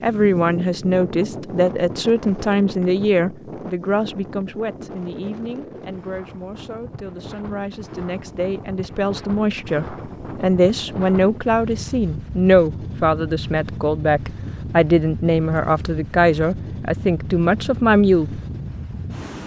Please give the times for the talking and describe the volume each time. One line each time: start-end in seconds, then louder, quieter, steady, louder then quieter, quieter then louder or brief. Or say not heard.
0.0-18.4 quieter then louder.